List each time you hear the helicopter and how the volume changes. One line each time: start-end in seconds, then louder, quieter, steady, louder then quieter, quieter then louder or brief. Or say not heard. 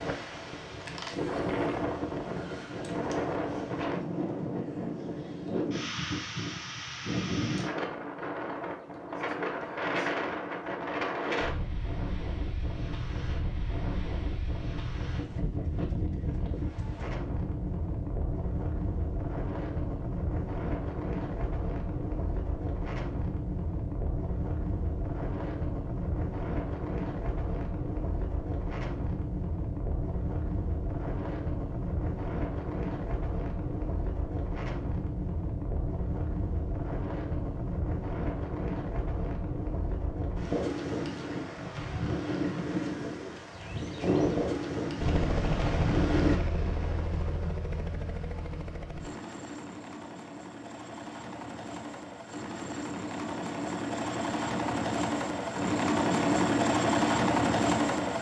45.0-58.1 quieter then louder.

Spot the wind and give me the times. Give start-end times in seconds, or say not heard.
0.0-46.4.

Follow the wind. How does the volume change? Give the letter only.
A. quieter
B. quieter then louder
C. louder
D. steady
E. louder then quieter
D.